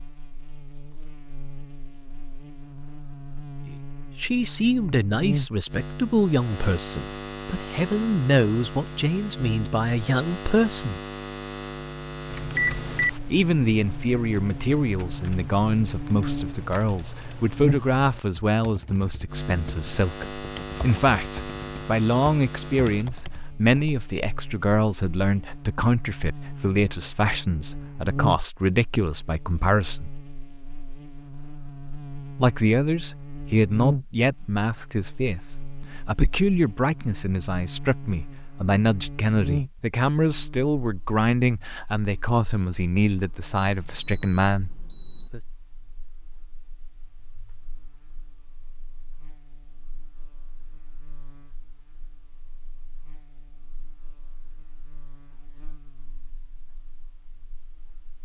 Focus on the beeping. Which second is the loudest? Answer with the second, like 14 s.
13 s.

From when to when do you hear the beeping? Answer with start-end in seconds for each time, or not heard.
12.6-13.2, 43.6-45.3.